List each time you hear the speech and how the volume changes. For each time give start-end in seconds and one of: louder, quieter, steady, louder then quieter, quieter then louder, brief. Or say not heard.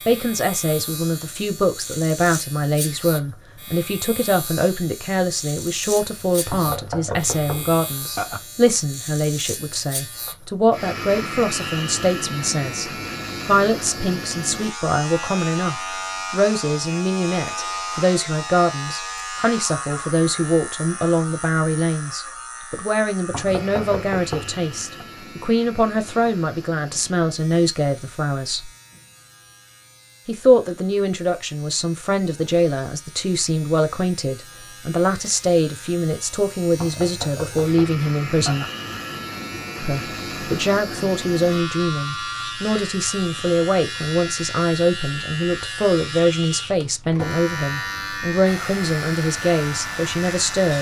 0.1-28.7 steady
30.2-38.6 steady
39.8-50.7 steady.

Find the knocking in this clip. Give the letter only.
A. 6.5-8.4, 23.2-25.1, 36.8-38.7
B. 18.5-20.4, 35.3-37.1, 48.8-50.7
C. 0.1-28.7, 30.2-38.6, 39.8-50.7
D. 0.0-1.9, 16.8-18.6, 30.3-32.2
A.